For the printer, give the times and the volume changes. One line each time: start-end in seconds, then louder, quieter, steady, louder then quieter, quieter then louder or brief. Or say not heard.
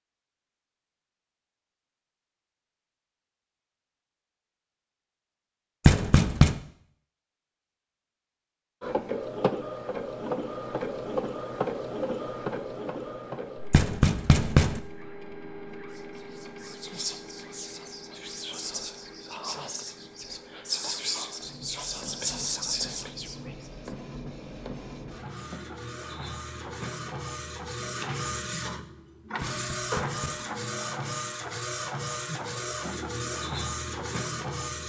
8.8-34.8 quieter then louder.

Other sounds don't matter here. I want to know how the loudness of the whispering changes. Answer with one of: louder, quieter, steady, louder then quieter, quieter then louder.
louder.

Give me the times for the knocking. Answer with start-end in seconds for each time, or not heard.
5.8-6.6, 13.7-14.8, 29.5-30.5.